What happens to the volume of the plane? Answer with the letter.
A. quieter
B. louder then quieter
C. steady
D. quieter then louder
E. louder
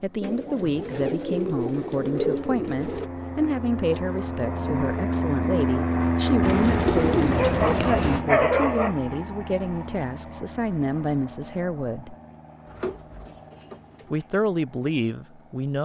B.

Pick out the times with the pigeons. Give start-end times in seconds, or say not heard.
0.2-3.1, 6.4-8.2, 12.7-14.2.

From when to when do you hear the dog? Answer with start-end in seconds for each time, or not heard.
7.3-8.9.